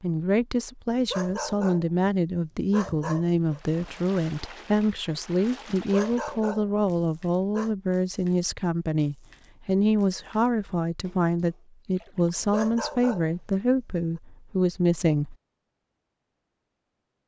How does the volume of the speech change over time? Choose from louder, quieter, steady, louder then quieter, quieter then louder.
steady.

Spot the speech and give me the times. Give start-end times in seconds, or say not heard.
0.0-15.3.